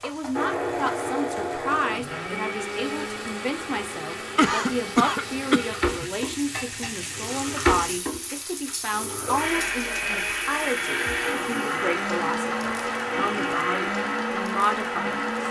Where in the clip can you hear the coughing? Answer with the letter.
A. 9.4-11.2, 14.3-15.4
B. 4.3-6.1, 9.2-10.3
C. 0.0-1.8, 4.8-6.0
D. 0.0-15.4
B.